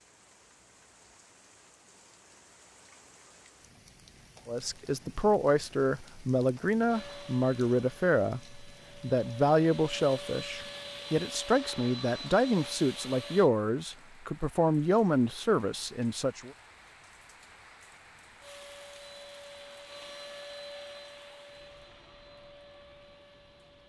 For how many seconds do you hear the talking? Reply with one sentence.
You can hear the talking for 12 seconds altogether.